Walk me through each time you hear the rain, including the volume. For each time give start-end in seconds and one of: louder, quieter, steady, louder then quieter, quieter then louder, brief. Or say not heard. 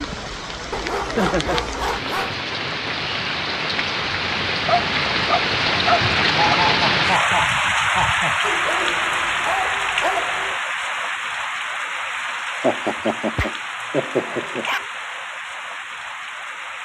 0.0-16.8 louder then quieter.